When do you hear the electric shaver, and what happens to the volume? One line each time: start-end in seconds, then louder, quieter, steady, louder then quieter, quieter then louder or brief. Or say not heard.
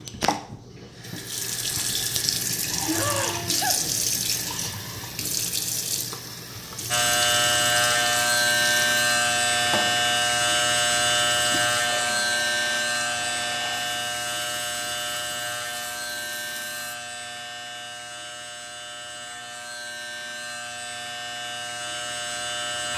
6.9-22.9 quieter.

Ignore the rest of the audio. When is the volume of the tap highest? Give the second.
4 s.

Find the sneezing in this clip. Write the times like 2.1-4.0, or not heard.
2.8-3.8.